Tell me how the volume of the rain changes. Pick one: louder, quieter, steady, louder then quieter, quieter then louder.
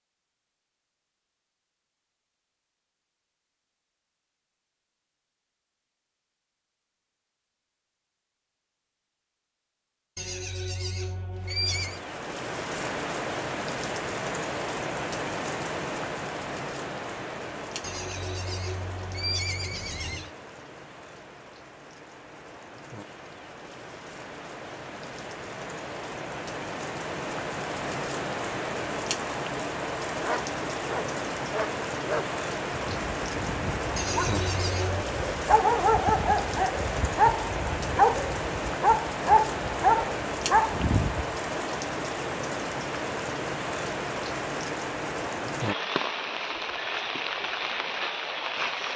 quieter then louder.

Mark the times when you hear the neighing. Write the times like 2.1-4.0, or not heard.
10.2-12.0, 17.8-20.3, 34.0-35.0.